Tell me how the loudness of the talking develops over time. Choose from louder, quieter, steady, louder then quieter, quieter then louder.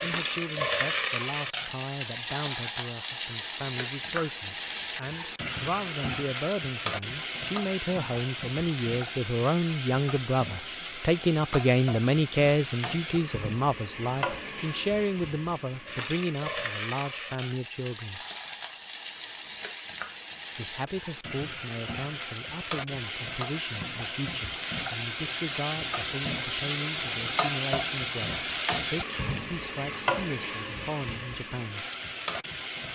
louder then quieter.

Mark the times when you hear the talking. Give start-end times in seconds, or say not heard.
0.0-18.2, 20.6-31.9.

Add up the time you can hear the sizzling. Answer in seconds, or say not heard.
33 s.